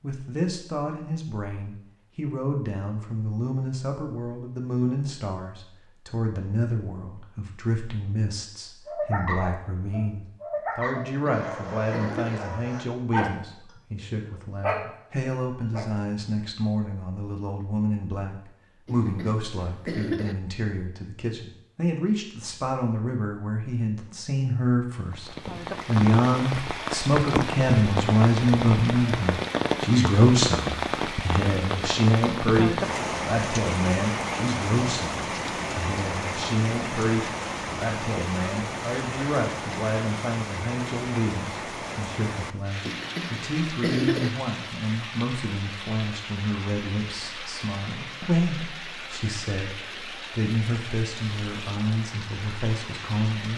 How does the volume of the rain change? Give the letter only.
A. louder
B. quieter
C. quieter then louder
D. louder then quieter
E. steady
B.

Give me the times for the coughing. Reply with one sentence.
The coughing can be heard from 10.9 to 12.4 s, from 18.9 to 20.4 s and from 42.8 to 44.3 s.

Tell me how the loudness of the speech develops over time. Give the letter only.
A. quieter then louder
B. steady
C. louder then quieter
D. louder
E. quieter
C.